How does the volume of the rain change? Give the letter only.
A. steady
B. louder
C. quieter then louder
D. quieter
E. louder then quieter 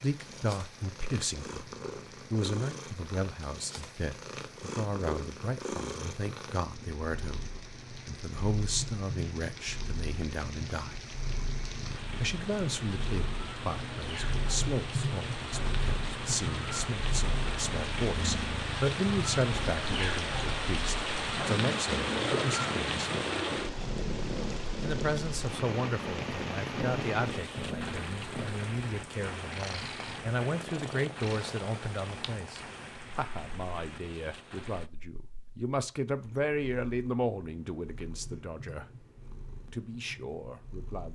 E.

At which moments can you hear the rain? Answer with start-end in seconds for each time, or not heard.
0.0-34.9.